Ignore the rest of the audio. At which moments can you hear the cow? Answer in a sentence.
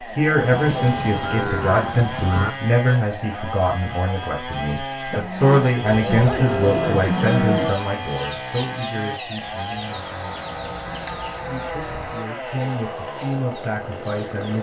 The cow can be heard from 0.5 to 2.5 s, from 5.1 to 7.8 s and from 10.6 to 12.2 s.